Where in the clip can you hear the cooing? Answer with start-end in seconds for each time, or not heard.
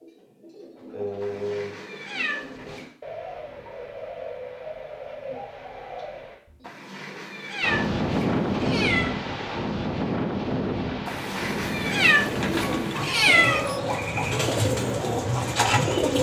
0.0-6.7, 12.1-16.1.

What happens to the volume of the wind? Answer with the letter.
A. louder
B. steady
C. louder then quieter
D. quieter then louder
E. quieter
E.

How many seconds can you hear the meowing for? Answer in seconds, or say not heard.
7 s.